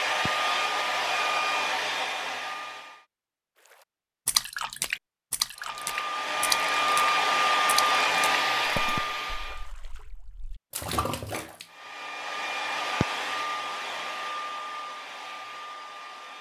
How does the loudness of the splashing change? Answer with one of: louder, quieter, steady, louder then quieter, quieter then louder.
quieter then louder.